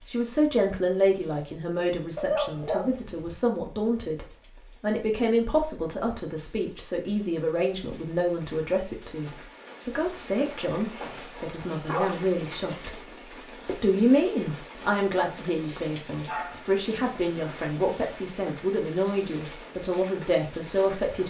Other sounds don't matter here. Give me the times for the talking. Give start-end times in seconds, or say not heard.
0.1-21.2.